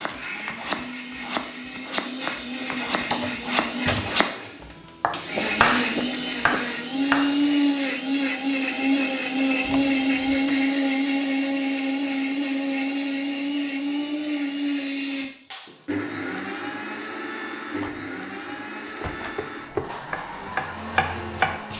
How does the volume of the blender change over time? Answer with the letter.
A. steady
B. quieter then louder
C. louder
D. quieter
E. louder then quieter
E.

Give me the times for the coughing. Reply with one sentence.
You can hear the coughing from 5.3 to 6.7 s.